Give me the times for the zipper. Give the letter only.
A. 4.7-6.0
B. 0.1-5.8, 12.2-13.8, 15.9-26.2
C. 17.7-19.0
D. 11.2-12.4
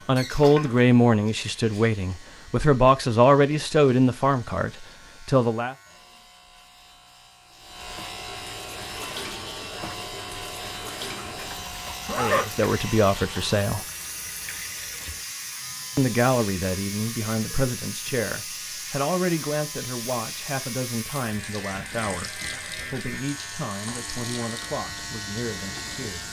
D.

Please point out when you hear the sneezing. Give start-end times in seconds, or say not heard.
not heard.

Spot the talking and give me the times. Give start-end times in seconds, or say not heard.
0.1-5.8, 12.2-13.8, 15.9-26.2.